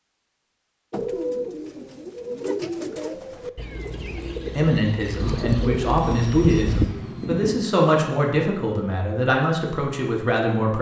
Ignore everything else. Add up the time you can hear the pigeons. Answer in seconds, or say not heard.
6 s.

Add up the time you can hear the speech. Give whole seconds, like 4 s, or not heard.
6 s.